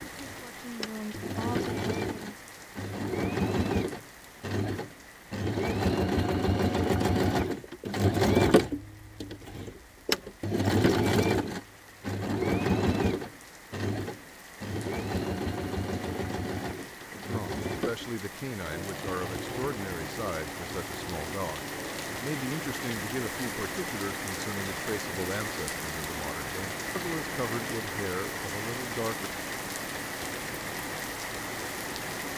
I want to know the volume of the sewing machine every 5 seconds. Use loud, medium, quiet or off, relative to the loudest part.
medium, loud, loud, medium, quiet, quiet, quiet.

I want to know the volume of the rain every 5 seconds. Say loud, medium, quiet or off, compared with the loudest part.
medium, quiet, quiet, medium, loud, loud, loud.